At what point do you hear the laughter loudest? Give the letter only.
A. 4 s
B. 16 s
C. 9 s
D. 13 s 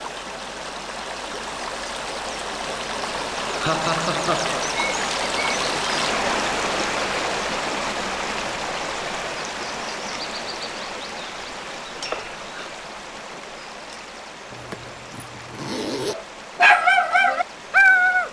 A.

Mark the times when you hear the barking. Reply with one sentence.
You can hear the barking from 16.1 to 18.2 s.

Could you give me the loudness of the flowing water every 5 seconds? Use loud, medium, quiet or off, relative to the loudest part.
loud, loud, medium, quiet.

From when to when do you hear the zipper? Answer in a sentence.
The zipper can be heard from 14.5 to 16.1 s.